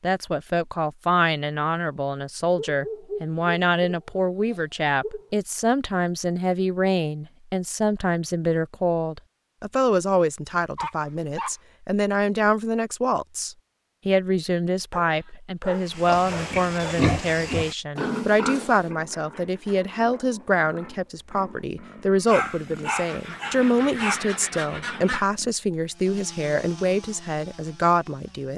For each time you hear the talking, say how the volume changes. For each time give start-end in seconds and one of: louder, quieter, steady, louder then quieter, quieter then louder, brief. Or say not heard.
0.0-28.5 steady.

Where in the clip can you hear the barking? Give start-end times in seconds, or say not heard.
2.5-5.4, 10.8-11.6, 14.9-16.9, 22.2-24.1.